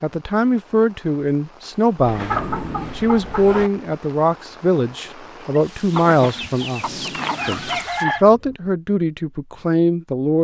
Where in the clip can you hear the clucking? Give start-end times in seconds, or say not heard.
2.0-3.7, 5.9-8.2.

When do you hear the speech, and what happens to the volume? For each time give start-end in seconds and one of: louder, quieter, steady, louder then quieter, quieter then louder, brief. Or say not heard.
0.0-10.3 steady.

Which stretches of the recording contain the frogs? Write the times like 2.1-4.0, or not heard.
not heard.